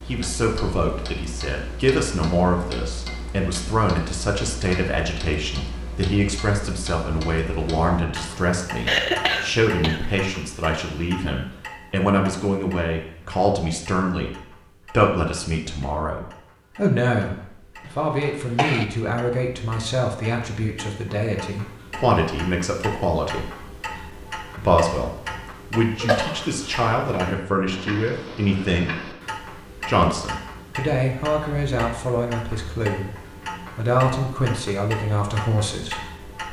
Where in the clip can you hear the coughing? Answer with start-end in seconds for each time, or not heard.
8.8-10.0, 17.9-18.9, 26.0-27.2.